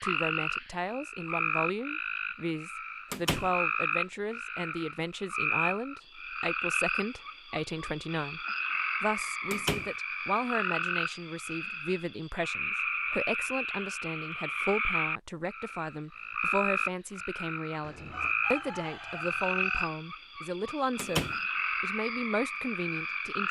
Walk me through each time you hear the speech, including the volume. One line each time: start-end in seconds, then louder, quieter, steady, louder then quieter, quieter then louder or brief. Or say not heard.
0.0-8.4 steady
9.0-23.4 steady.